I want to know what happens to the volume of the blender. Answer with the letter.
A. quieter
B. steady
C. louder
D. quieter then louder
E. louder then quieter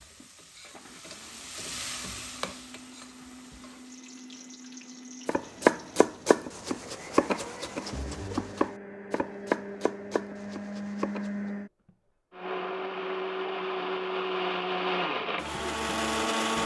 C.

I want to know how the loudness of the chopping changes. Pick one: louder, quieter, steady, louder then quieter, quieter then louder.
quieter.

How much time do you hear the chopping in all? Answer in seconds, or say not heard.
6 s.